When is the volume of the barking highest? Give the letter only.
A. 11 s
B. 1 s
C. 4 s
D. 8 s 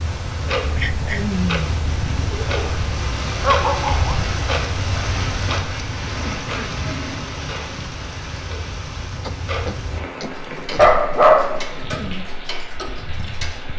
A.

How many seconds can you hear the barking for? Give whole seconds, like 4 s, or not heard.
3 s.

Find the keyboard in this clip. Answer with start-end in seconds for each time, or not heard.
not heard.